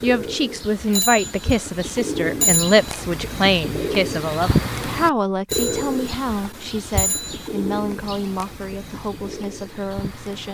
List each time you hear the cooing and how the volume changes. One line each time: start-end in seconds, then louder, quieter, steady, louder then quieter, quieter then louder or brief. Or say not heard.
0.0-10.4 louder then quieter.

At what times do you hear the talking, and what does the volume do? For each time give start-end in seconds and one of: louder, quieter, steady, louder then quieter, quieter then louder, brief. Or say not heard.
0.0-10.4 quieter.